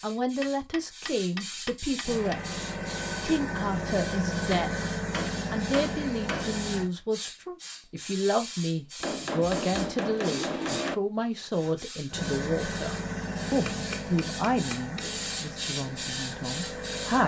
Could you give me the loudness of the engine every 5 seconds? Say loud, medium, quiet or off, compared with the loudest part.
loud, loud, loud, medium.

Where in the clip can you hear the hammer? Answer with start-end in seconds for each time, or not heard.
0.4-2.4, 4.5-6.7, 9.0-10.9, 13.4-15.2.